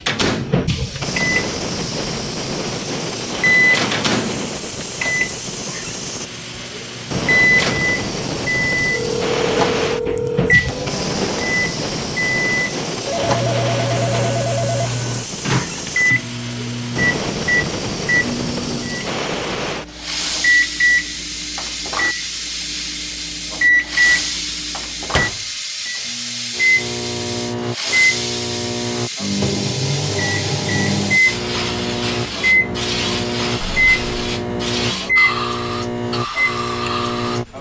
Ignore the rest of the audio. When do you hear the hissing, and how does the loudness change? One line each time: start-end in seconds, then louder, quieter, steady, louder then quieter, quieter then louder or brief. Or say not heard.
0.0-37.5 steady.